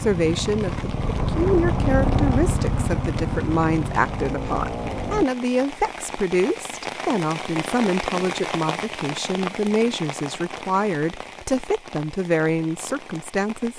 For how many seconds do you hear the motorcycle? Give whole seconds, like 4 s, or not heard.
5 s.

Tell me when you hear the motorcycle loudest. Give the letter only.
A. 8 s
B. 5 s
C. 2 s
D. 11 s
C.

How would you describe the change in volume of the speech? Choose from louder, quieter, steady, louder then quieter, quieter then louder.
steady.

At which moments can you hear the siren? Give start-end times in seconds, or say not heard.
not heard.